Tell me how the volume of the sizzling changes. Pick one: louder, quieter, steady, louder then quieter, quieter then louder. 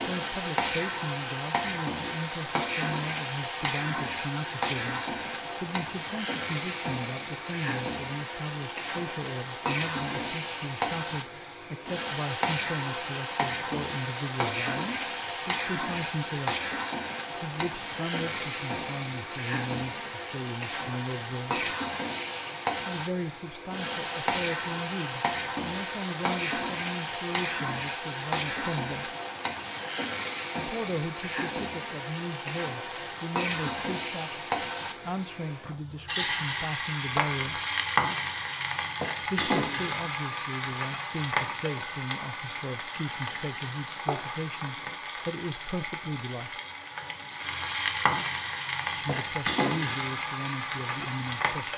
steady.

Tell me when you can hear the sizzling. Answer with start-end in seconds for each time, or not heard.
0.0-51.7.